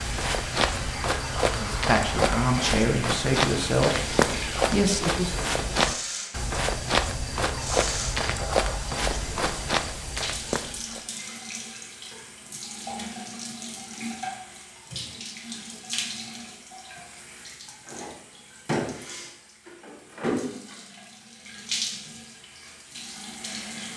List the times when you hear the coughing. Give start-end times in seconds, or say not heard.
not heard.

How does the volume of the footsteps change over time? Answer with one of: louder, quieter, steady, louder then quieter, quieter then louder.
steady.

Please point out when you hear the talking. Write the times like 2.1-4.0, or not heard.
1.4-5.3.